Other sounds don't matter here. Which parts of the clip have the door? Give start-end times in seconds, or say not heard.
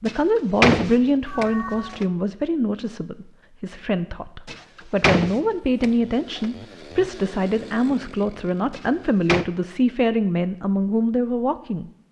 0.1-2.0, 4.5-6.5, 8.7-9.4.